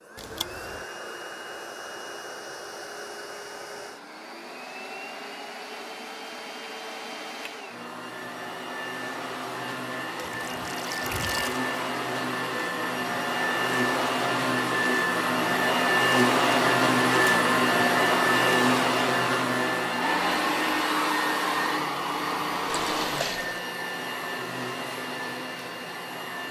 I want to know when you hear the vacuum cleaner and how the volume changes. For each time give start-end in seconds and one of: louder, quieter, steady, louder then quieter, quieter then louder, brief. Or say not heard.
0.0-26.4 louder then quieter.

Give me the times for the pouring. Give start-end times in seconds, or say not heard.
0.1-0.8, 10.2-11.6, 22.6-23.6.